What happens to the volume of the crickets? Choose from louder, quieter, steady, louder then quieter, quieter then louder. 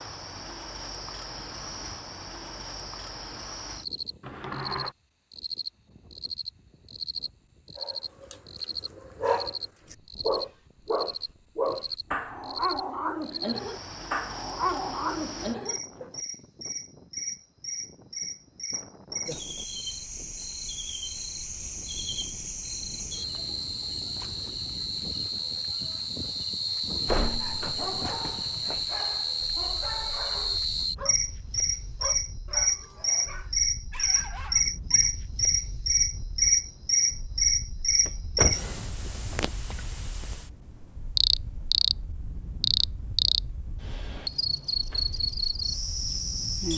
louder.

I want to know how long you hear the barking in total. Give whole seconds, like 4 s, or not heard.
17 s.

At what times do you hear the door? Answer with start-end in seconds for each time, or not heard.
4.2-5.0, 27.1-28.8, 38.0-39.1.